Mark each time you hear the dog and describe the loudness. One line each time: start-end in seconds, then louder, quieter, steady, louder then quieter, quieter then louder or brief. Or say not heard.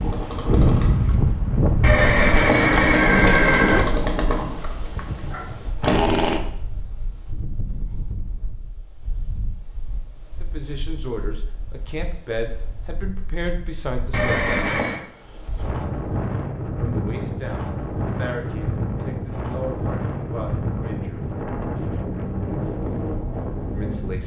not heard.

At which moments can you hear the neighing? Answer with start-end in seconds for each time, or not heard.
1.8-3.9, 14.1-15.0.